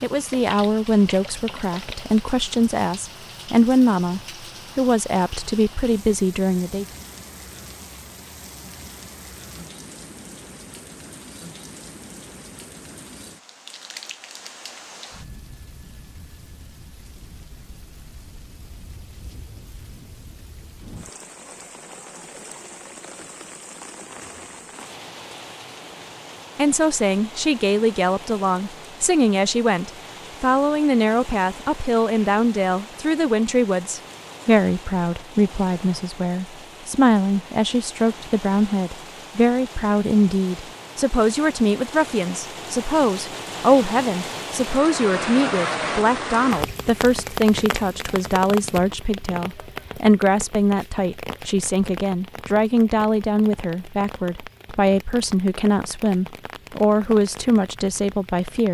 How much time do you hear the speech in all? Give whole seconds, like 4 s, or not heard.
39 s.